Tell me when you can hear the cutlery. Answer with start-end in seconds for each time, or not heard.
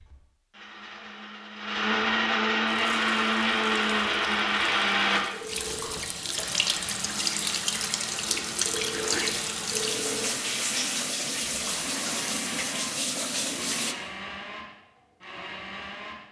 not heard.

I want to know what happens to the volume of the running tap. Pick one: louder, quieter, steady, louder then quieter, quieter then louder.
louder.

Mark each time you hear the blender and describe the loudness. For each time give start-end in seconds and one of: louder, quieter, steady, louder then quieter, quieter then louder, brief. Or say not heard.
0.0-16.2 quieter.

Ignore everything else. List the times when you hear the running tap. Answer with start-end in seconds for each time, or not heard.
2.8-13.9.